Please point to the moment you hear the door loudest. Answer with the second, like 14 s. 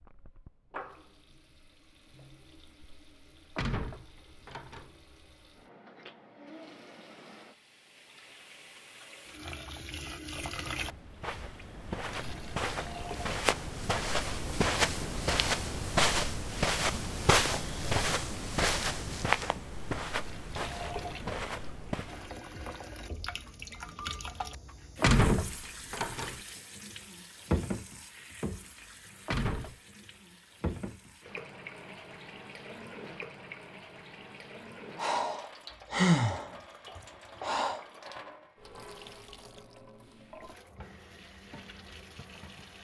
25 s.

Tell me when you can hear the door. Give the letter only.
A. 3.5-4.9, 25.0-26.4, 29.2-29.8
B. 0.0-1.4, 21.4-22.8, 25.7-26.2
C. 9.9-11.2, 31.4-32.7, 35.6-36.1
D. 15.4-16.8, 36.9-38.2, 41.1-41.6
A.